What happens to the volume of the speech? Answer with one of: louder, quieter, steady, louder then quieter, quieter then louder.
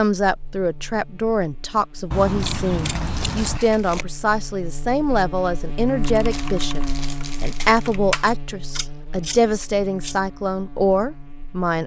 steady.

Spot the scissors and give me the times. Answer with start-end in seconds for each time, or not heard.
2.1-3.6, 8.2-10.2.